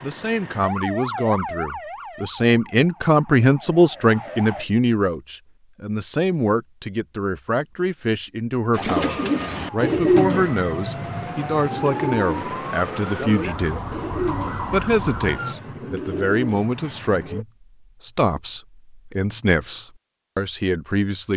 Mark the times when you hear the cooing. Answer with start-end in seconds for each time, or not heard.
8.7-17.4.